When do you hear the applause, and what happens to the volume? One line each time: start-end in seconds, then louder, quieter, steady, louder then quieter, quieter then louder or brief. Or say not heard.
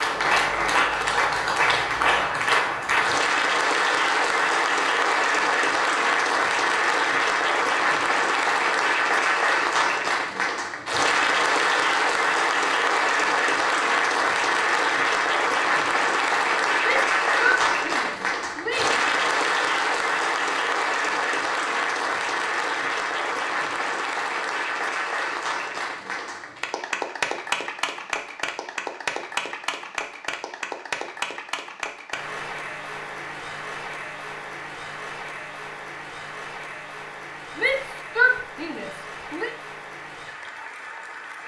0.0-41.4 quieter.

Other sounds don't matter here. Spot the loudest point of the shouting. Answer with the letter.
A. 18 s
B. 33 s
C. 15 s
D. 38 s
D.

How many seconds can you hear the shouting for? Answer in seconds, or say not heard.
4 s.